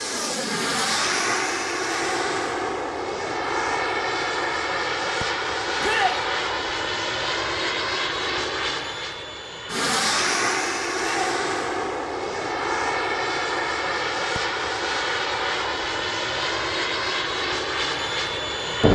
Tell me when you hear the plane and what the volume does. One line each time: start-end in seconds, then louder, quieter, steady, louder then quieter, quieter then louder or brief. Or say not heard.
0.0-18.8 steady.